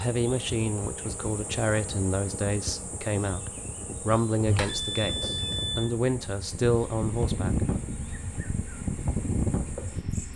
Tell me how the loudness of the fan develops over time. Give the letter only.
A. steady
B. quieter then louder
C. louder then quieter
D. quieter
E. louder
E.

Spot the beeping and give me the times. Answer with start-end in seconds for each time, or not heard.
4.5-5.9.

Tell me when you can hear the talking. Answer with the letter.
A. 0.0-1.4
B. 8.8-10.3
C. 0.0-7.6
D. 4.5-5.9
C.